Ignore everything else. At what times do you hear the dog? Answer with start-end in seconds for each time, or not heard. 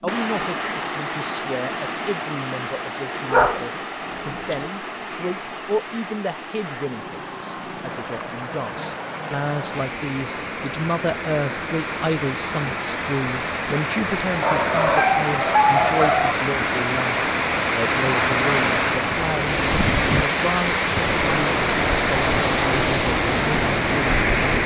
3.3-4.7, 14.4-16.4.